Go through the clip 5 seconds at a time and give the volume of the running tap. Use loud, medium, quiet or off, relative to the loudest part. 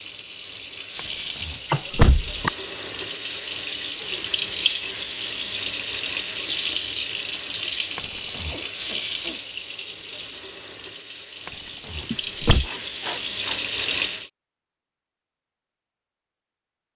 loud, loud, loud, off.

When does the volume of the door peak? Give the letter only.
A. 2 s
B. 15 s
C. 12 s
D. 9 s
A.